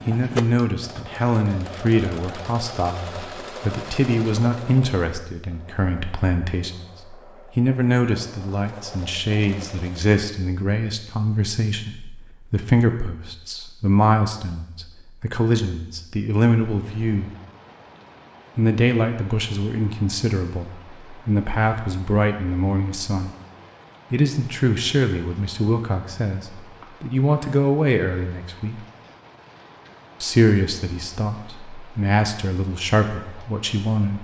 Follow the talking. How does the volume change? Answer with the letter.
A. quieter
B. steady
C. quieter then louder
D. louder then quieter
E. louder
B.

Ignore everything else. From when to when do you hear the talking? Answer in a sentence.
The talking can be heard from 0.1 to 17.3 s, from 18.6 to 23.4 s, from 24.1 to 28.8 s and from 30.2 to 34.1 s.